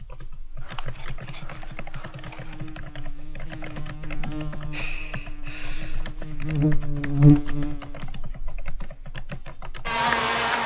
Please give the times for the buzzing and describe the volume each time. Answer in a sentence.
The buzzing can be heard from 0.2 to 10.6 s, getting louder then quieter.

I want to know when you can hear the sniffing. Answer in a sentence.
The sniffing can be heard from 4.2 to 6.1 s.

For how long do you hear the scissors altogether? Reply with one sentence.
You can hear the scissors for 2 seconds altogether.